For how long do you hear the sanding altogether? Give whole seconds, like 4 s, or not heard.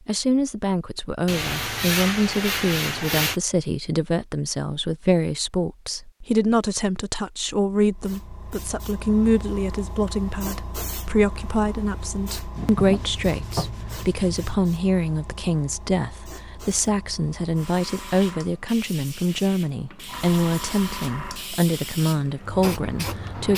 4 s.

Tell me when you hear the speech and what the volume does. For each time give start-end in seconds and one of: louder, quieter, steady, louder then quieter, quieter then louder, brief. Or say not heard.
0.1-23.5 steady.